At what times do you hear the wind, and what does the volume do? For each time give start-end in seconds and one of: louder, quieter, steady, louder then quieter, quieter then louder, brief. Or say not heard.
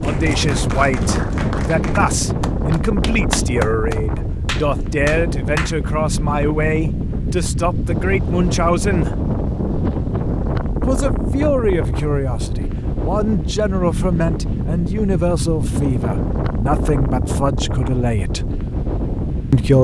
0.0-19.7 steady.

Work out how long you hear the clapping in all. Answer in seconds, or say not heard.
6 s.